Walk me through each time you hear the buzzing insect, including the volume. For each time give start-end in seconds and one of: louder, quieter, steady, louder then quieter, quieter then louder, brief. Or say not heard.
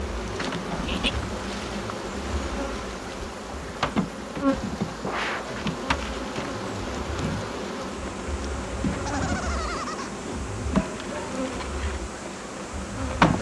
0.0-13.3 steady.